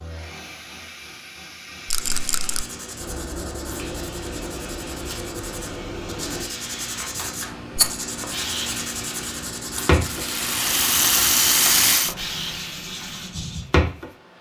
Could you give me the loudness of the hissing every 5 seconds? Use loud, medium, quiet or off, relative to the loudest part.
medium, loud, loud.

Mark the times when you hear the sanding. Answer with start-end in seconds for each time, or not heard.
1.9-13.7.